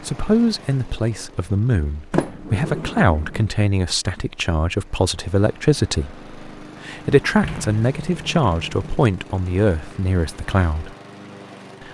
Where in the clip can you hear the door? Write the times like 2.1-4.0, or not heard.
2.1-3.5, 7.4-8.9.